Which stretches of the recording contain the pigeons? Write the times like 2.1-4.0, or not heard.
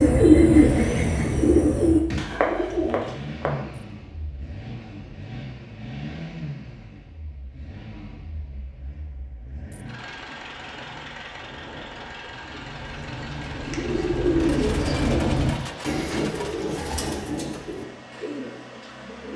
0.0-3.7, 12.4-19.3.